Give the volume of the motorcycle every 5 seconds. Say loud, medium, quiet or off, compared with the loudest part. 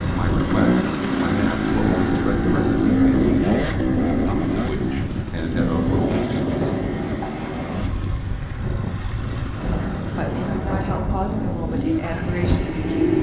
loud, medium, quiet.